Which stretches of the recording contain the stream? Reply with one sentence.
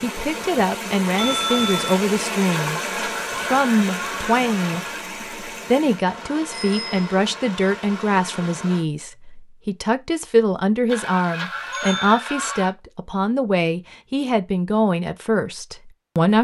You can hear the stream from 0.0 to 8.8 s.